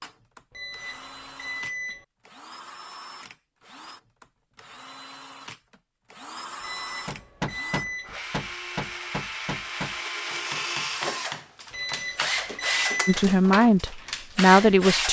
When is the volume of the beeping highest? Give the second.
13 s.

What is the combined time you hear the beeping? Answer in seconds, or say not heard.
5 s.